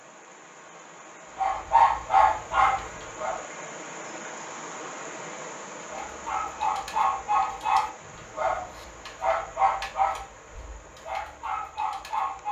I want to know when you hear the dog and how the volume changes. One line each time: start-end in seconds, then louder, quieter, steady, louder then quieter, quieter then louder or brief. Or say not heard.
1.4-3.4 brief
5.9-12.4 quieter.